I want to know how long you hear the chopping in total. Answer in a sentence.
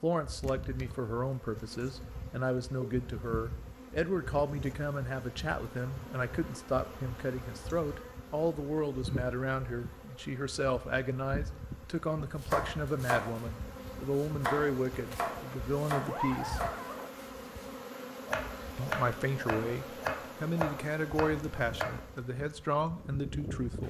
You can hear the chopping for 10 seconds altogether.